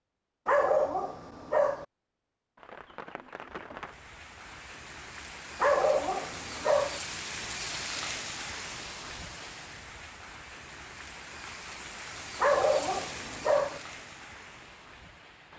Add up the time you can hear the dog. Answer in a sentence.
You can hear the dog for 4 seconds altogether.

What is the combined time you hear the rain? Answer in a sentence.
You can hear the rain for 13 seconds altogether.